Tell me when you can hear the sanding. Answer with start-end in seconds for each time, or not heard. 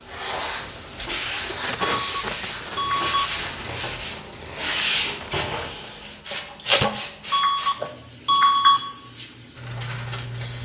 0.1-6.2.